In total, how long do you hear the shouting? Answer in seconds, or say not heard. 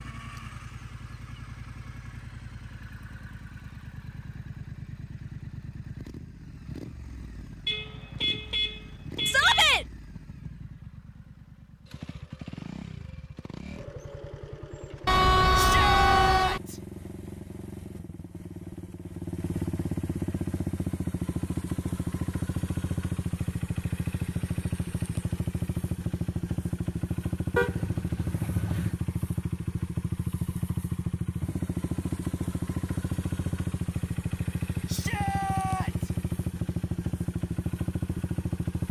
3 s.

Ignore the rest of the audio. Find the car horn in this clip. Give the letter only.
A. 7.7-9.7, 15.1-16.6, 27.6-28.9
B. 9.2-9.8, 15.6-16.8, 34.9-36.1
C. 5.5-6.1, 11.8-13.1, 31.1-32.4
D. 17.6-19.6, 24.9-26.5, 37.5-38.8
A.